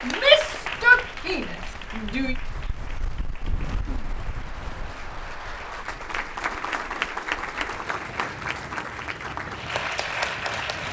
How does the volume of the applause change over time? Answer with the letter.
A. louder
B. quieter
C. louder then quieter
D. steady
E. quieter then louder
E.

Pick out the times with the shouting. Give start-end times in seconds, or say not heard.
0.0-2.4.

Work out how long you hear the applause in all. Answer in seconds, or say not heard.
11 s.